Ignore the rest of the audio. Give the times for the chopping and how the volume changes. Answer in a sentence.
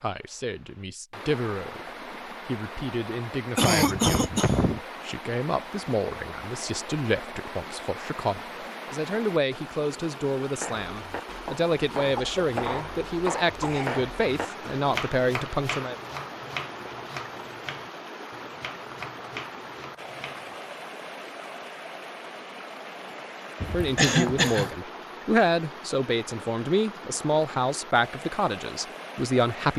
The chopping can be heard from 10.6 to 20.6 s, getting quieter.